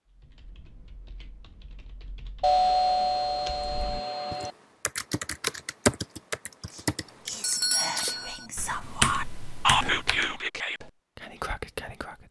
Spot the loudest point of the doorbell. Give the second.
3 s.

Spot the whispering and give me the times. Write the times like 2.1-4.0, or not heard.
6.7-12.2.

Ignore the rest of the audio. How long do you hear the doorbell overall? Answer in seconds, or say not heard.
3 s.